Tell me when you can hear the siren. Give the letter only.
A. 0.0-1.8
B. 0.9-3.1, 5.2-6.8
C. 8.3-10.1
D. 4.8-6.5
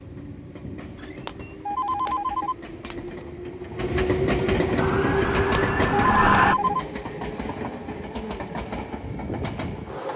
D.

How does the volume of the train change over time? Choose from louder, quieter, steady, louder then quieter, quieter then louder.
louder then quieter.